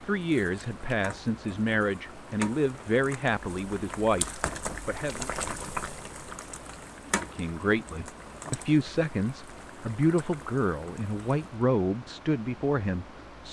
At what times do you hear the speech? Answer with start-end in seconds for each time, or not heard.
0.0-5.3, 7.2-13.4.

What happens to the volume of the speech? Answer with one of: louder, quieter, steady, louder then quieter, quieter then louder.
steady.